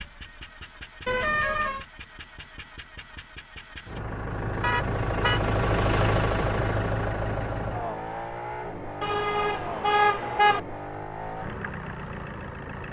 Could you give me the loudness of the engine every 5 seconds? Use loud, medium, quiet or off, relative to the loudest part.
medium, loud, medium.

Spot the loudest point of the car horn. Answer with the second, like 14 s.
10 s.